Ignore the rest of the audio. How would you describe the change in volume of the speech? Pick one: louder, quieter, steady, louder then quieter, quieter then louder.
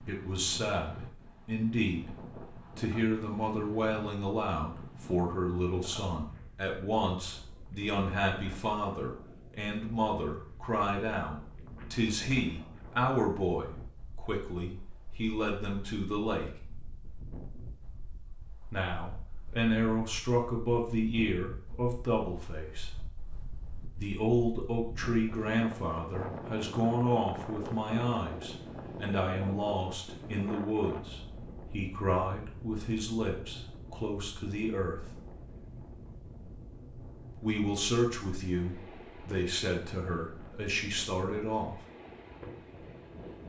steady.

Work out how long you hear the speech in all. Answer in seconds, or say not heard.
36 s.